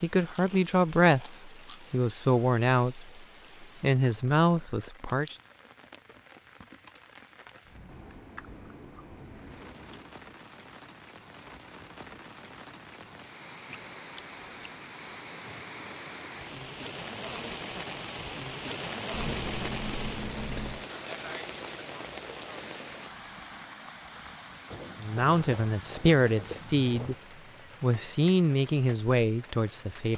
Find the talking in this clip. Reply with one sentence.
You can hear the talking from 0.0 to 5.3 s, from 25.0 to 27.1 s and from 27.8 to 30.1 s.